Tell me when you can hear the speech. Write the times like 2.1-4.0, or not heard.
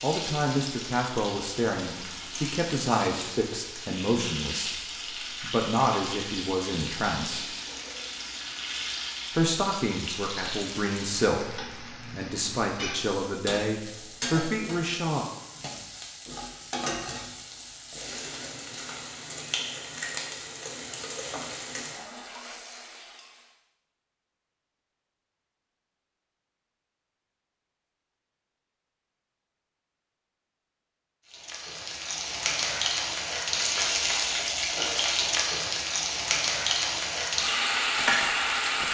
0.0-4.8, 5.4-7.5, 9.3-15.2.